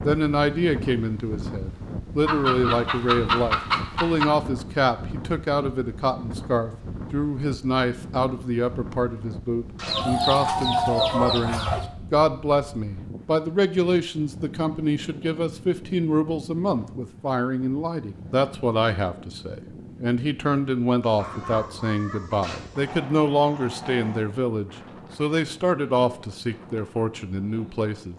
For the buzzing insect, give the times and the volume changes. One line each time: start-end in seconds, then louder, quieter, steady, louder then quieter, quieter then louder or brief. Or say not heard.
not heard.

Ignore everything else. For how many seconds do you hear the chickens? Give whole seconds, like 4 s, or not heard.
6 s.